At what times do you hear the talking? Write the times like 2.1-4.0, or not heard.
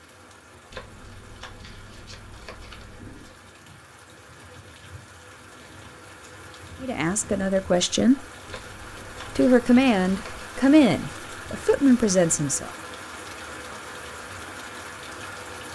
6.8-8.2, 9.3-12.7.